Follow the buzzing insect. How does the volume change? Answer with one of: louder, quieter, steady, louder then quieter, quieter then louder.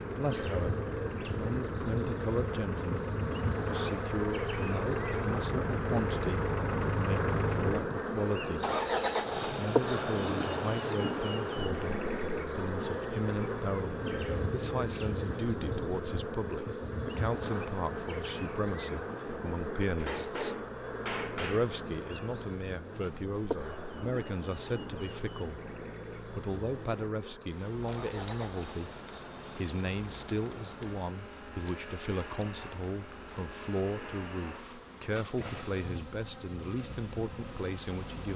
quieter.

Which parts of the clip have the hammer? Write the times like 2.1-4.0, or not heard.
19.9-21.8.